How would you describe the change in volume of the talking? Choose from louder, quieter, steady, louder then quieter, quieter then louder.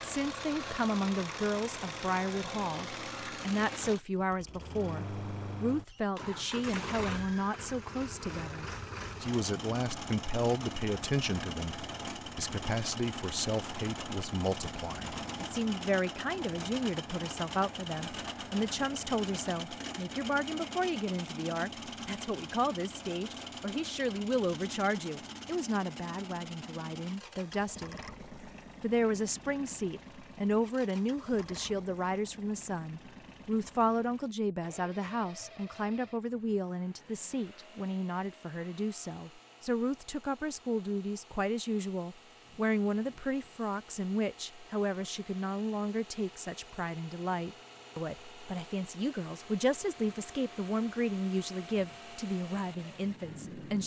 steady.